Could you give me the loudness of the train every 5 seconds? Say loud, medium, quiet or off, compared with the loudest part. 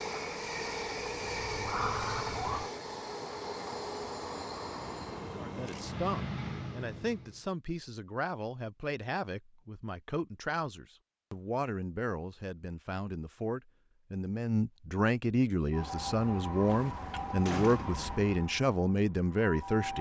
loud, loud, off, off.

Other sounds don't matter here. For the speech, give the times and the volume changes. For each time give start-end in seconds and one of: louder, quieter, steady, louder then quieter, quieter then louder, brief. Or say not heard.
5.4-19.9 louder.